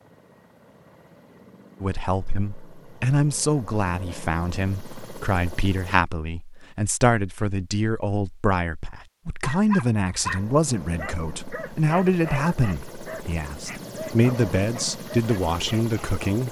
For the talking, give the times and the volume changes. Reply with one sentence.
You can hear the talking from 1.8 to 16.4 s, at a steady volume.